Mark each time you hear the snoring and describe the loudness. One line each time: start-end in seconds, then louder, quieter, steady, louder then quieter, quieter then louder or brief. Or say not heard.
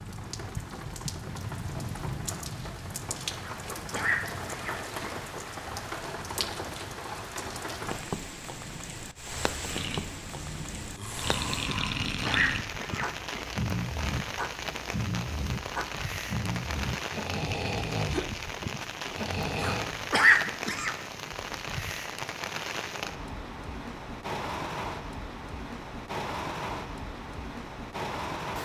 9.7-20.0 steady.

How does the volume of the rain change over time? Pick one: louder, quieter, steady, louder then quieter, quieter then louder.
steady.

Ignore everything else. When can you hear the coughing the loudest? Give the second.
20 s.